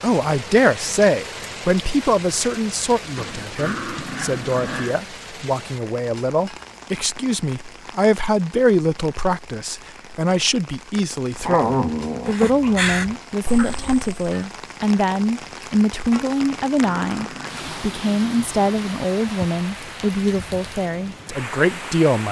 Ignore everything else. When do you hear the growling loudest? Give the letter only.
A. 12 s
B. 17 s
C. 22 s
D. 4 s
A.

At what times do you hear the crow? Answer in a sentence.
The crow can be heard from 12.2 to 14.4 s.